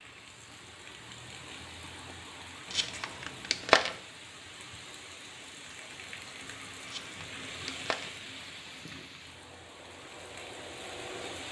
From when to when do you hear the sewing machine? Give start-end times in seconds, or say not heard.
9.2-11.4.